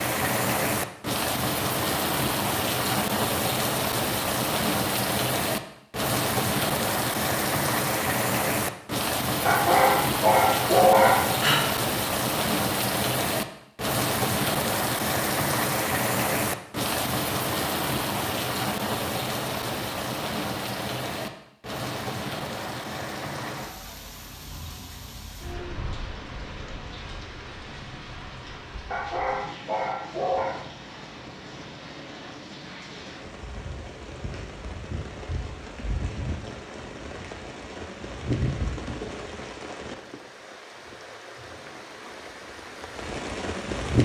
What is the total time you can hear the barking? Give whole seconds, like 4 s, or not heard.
4 s.